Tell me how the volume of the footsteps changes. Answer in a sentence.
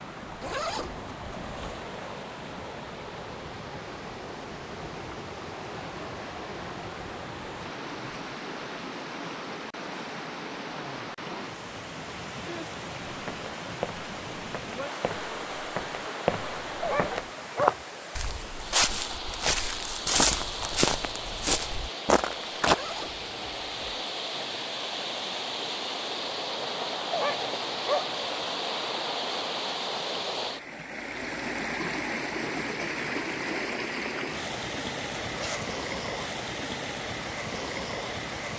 The loudness of the footsteps goes up.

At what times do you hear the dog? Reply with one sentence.
The dog can be heard from 16.8 to 17.8 s and from 27.1 to 28.1 s.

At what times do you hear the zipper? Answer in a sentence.
The zipper can be heard from 0.4 to 1.8 s, from 22.6 to 24.1 s and from 35.2 to 35.8 s.